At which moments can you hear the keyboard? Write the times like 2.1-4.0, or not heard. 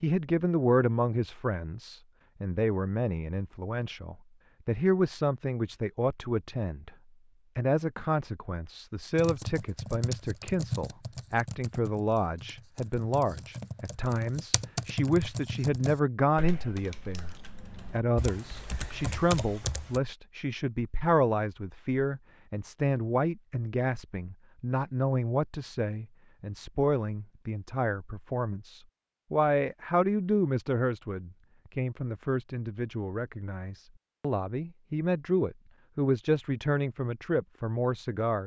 9.2-20.0.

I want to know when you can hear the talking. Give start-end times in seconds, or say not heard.
0.0-6.9, 7.5-38.4.